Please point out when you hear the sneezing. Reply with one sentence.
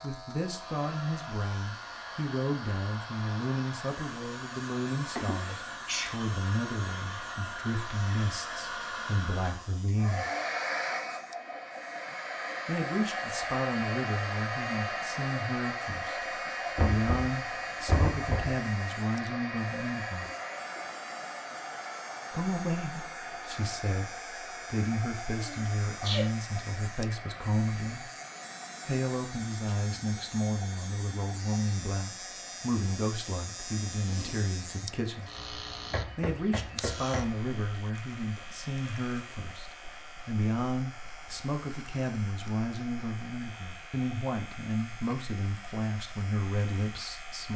The sneezing can be heard from 5.2 to 6.2 s, from 25.4 to 26.2 s and from 34.0 to 34.5 s.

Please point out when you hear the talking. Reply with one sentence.
The talking can be heard from 0.0 to 10.2 s, from 12.7 to 20.2 s, from 22.3 to 28.1 s, from 28.9 to 35.3 s and from 36.1 to 47.5 s.